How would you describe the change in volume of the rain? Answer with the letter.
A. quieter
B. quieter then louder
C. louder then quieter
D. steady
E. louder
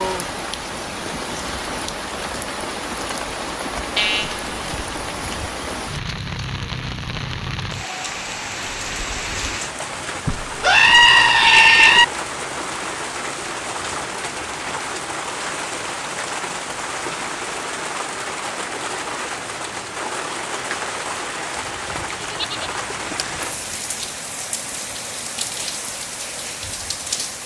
D.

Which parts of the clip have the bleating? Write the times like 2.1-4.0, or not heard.
4.0-4.5, 10.2-12.1, 21.6-23.8.